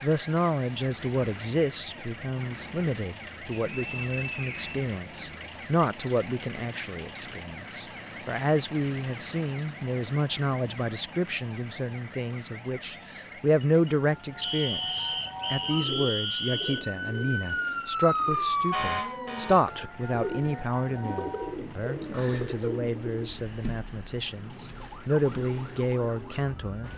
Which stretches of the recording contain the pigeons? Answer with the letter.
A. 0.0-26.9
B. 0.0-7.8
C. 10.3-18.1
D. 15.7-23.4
D.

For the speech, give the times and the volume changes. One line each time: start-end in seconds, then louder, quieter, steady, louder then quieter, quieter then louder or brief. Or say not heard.
0.0-26.9 steady.